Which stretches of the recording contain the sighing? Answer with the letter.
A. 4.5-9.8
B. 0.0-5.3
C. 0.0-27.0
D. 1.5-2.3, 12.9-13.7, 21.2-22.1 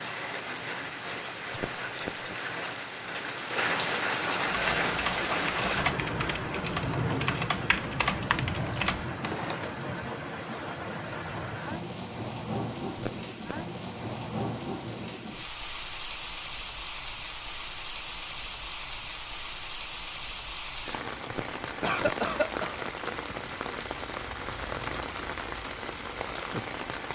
D.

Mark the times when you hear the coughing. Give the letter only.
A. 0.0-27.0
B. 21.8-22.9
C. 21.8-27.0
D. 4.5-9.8
B.